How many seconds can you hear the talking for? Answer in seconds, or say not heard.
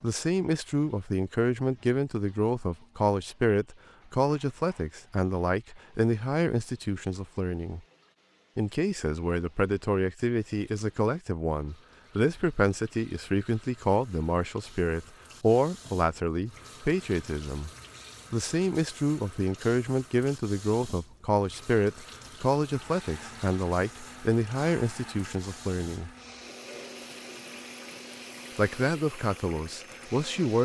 27 s.